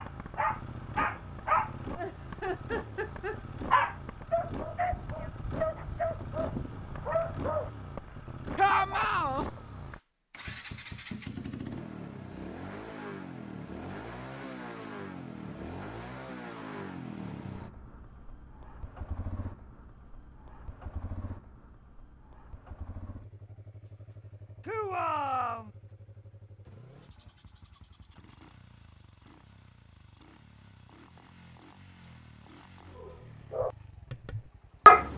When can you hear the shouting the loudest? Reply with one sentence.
The volume of the shouting peaks at 9 seconds.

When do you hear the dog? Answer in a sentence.
The dog can be heard from 0.0 to 7.7 s, from 8.5 to 9.1 s and from 33.0 to 35.1 s.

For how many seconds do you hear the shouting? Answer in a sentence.
The shouting can be heard for 2 seconds in total.